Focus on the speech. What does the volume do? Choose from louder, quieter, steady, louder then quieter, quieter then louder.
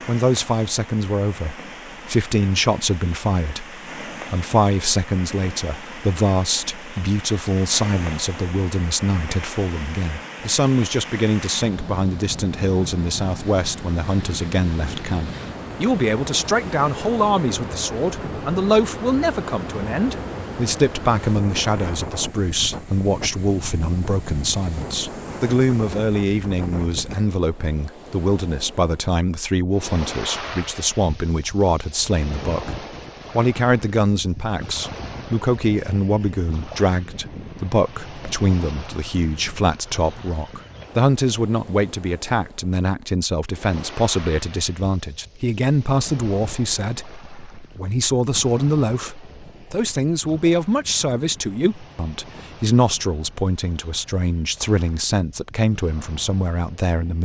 steady.